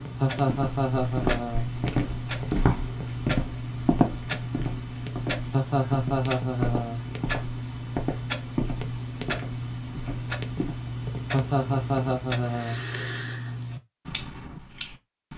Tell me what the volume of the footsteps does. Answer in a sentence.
The loudness of the footsteps goes down.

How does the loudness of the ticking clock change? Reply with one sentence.
The loudness of the ticking clock stays about the same.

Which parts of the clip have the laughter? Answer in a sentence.
You can hear the laughter from 0.2 to 1.7 s, from 5.5 to 7.0 s and from 11.3 to 12.8 s.